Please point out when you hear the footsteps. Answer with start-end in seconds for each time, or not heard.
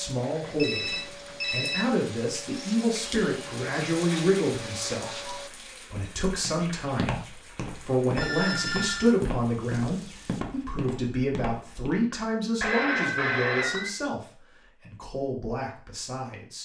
6.0-12.0.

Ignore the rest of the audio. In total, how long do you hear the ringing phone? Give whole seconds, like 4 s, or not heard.
4 s.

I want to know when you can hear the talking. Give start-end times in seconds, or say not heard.
0.0-16.6.